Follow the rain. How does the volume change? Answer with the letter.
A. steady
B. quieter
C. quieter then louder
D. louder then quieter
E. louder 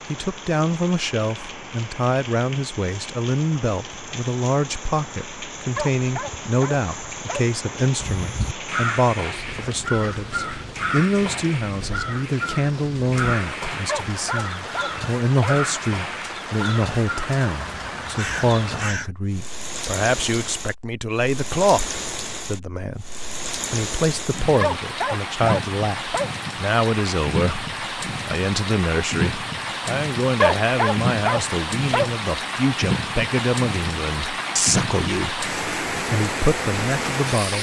E.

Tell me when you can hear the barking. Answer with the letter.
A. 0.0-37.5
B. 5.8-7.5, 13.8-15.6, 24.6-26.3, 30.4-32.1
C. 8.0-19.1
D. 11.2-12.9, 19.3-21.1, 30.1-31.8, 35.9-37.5
B.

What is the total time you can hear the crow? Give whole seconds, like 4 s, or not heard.
11 s.